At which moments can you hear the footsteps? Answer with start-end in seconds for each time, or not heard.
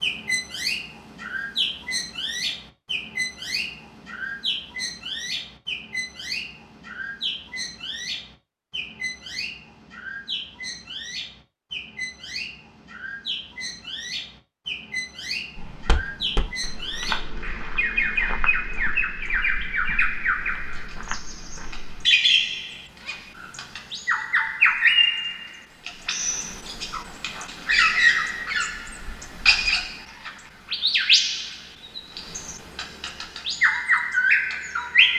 15.6-22.1.